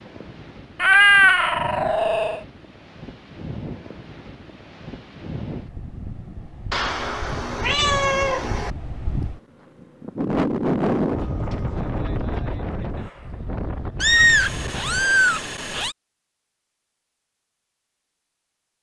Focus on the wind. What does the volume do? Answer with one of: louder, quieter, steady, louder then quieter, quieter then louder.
louder then quieter.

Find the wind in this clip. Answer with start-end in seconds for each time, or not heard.
0.0-15.1.